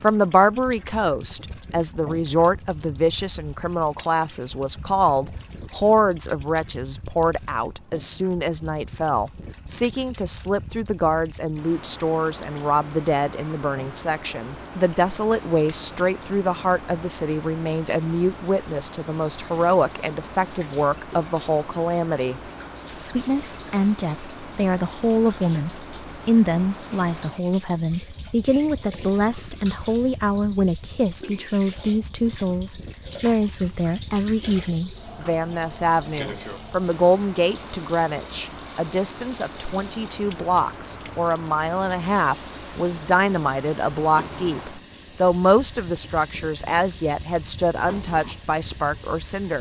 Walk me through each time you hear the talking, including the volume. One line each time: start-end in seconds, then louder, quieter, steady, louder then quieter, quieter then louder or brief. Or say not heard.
0.0-22.4 steady
23.0-49.5 steady.